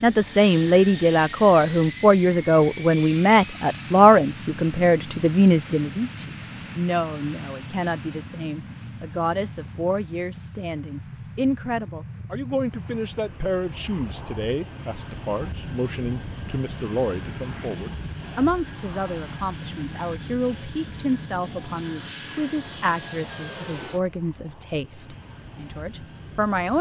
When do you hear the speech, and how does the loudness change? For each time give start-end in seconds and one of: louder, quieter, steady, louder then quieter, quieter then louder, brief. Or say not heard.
0.0-26.7 quieter.